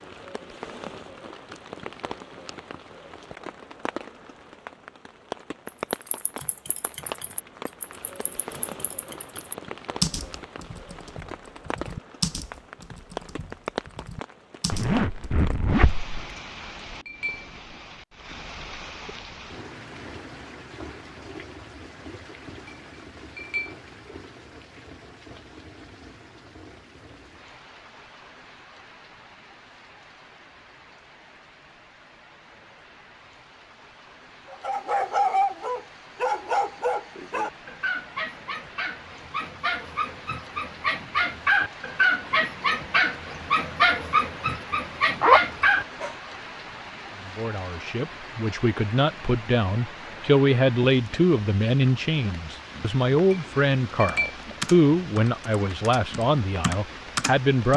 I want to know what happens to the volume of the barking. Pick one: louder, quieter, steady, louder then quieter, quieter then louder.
quieter then louder.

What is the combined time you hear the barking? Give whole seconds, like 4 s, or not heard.
12 s.